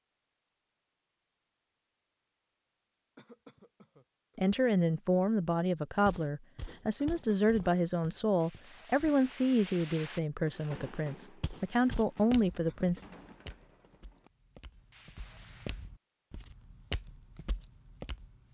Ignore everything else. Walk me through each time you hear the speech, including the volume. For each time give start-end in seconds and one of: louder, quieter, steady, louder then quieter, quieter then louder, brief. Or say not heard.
4.3-13.0 steady.